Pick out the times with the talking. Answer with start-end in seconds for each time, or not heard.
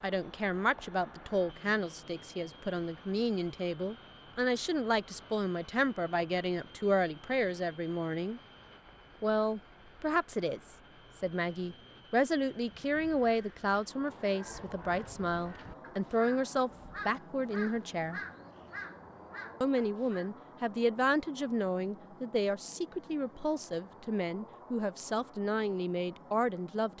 0.0-8.4, 9.2-18.2, 19.6-26.9.